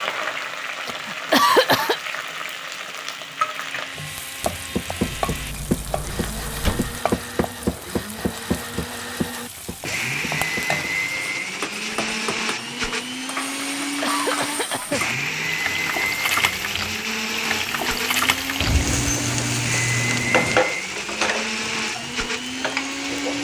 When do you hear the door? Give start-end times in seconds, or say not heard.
5.0-7.0, 18.6-20.6.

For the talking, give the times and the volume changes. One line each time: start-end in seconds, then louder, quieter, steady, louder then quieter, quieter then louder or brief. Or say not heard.
not heard.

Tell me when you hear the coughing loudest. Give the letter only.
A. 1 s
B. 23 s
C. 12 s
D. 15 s
A.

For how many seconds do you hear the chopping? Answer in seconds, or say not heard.
6 s.